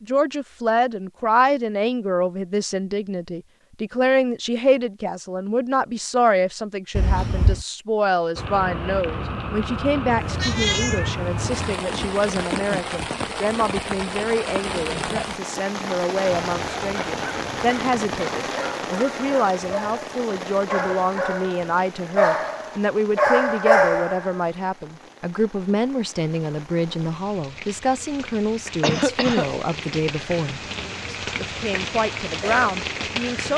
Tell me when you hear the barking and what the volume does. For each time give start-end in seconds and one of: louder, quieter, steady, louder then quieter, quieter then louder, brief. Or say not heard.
16.2-24.4 louder.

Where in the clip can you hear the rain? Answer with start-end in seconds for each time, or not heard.
8.3-33.5.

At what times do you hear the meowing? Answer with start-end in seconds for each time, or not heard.
10.2-11.8.